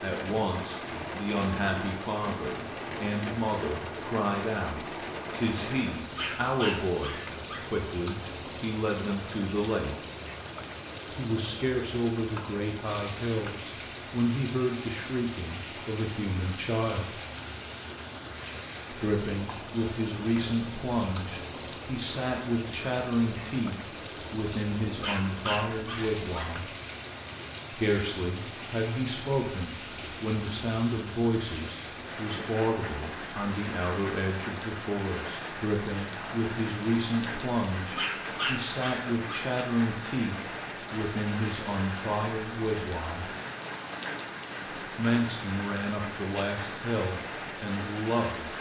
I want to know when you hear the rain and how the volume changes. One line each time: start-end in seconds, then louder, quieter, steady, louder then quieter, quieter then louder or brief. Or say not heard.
0.0-48.5 steady.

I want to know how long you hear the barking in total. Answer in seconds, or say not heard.
5 s.